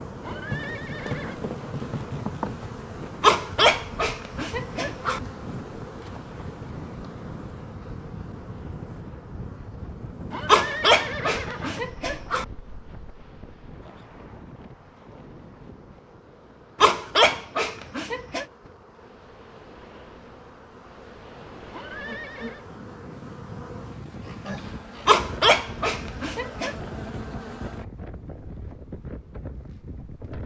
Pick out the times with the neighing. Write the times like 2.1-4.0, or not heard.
0.2-1.4, 10.3-11.8, 21.7-22.6.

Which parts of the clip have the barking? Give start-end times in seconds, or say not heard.
3.2-5.2, 10.4-12.4, 16.8-18.4, 25.1-26.8.